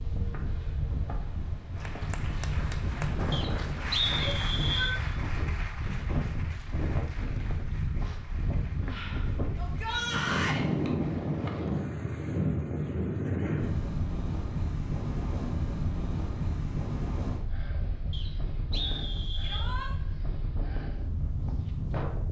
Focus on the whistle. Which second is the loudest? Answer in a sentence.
The volume of the whistle peaks at 4 seconds.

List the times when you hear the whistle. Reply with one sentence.
You can hear the whistle from 3.3 to 5.0 s and from 18.1 to 19.7 s.